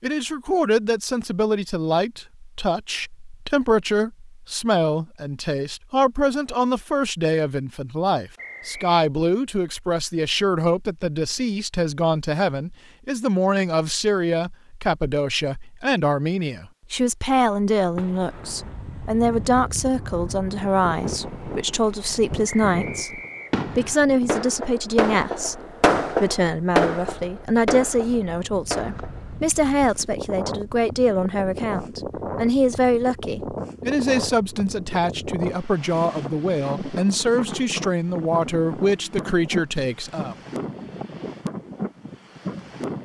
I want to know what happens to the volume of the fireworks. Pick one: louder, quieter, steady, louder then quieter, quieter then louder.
louder then quieter.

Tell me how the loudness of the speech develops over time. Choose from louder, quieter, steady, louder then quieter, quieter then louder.
steady.